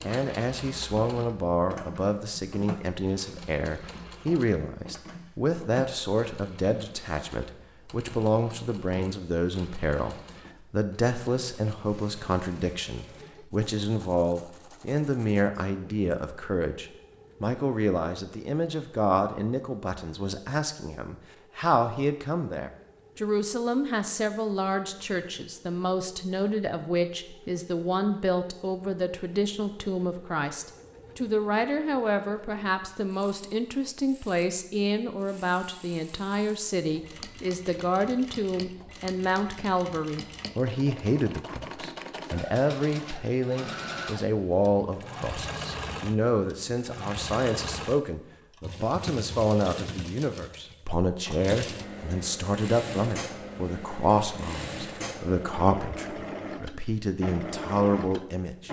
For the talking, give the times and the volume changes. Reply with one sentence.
The talking can be heard from 0.0 to 58.6 s, at a steady volume.